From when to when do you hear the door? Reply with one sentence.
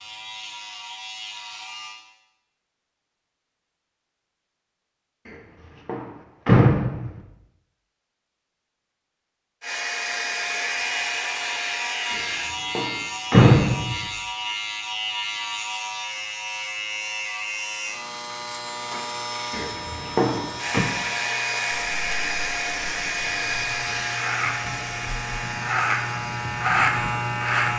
You can hear the door from 5.2 to 7.2 s, from 12.1 to 14.1 s and from 19.5 to 20.9 s.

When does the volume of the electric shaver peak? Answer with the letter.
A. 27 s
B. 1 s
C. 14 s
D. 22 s
A.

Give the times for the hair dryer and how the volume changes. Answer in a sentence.
You can hear the hair dryer briefly from 9.6 to 12.6 s; and from 20.6 to 27.4 s, getting quieter.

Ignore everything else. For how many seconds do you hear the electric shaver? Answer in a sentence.
You can hear the electric shaver for 19 seconds altogether.